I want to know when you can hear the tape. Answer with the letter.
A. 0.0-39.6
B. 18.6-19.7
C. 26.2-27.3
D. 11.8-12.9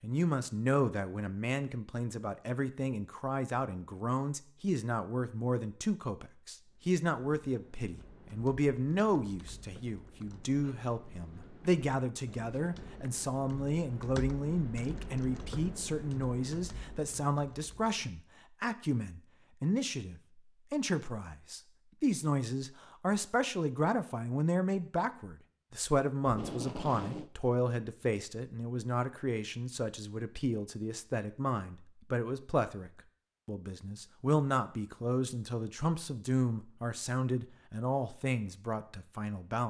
C.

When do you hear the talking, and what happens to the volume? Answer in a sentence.
You can hear the talking from 0.0 to 39.6 s, at a steady volume.